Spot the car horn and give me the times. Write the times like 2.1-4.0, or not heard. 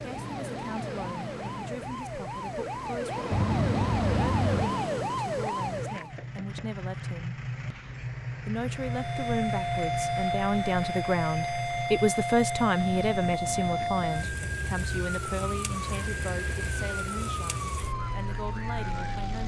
3.3-4.7, 12.8-14.1.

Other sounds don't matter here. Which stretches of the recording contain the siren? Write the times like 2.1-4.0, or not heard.
0.0-6.2, 8.8-19.4.